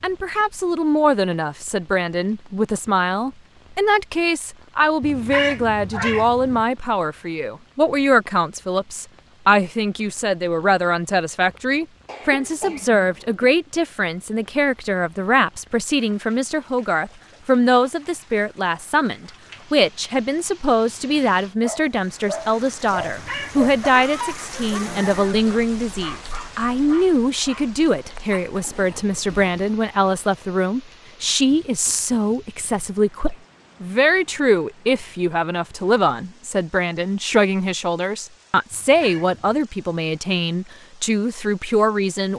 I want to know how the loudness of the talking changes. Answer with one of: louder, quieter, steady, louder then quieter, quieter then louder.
steady.